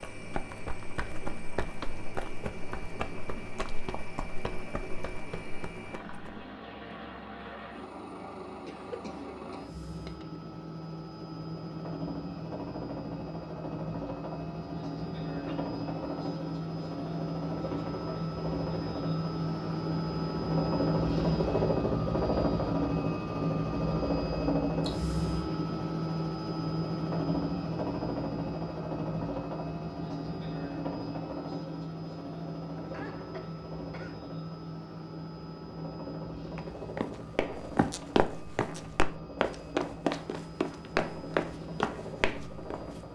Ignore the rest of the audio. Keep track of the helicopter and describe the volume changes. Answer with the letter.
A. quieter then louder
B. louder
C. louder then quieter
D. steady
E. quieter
C.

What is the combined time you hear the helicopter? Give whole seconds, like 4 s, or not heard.
43 s.